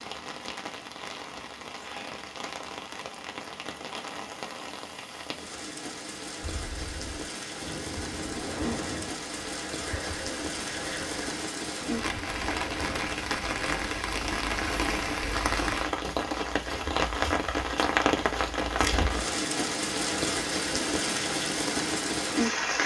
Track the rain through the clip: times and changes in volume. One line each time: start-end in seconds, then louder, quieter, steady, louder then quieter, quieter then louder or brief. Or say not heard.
0.0-22.8 louder.